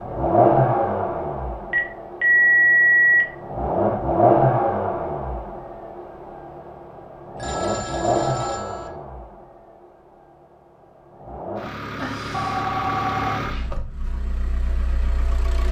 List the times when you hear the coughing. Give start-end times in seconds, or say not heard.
not heard.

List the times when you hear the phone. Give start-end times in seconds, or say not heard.
1.7-3.2, 7.3-8.9, 11.9-13.7.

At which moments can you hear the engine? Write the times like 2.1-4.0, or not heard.
0.0-15.6.